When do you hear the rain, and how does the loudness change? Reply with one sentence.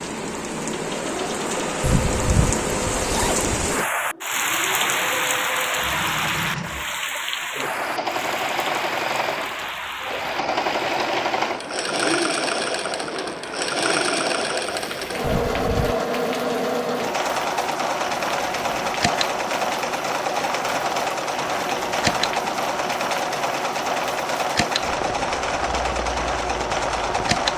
You can hear the rain from 0.0 to 27.5 s, getting quieter.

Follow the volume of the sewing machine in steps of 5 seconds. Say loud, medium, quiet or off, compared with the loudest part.
medium, medium, loud, loud, loud, loud.